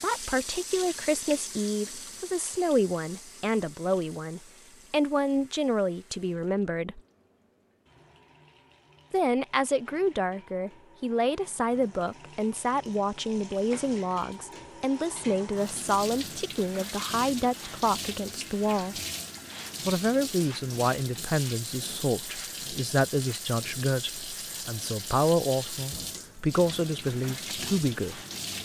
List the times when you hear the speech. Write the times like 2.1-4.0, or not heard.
0.0-7.0, 9.1-19.0, 19.9-28.2.